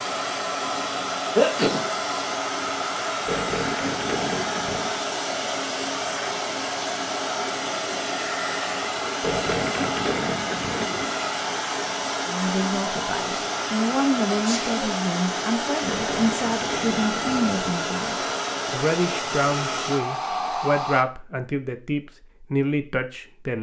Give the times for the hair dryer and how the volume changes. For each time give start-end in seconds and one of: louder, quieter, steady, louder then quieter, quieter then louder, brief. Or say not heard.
0.0-21.1 steady.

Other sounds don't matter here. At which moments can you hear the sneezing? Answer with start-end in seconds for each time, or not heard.
1.4-1.9, 14.3-14.8.